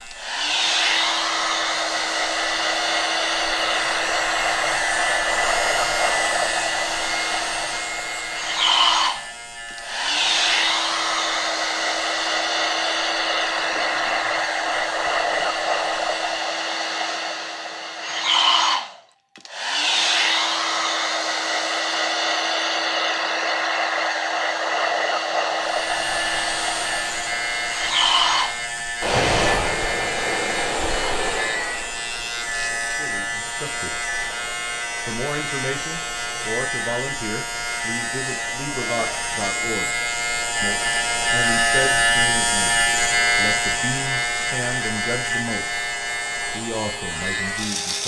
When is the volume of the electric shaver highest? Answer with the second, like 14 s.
42 s.